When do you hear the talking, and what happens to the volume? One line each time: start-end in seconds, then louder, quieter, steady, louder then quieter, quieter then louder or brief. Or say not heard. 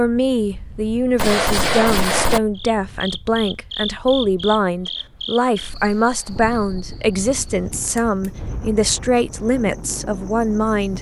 0.0-10.9 steady.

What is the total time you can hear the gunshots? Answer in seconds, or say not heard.
2 s.